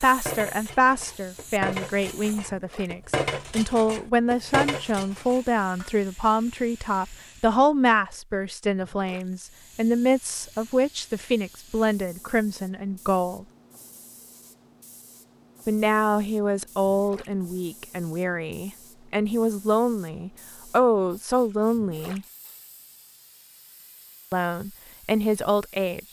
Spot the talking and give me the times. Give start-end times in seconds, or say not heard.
0.0-13.4, 15.7-22.2, 24.3-26.0.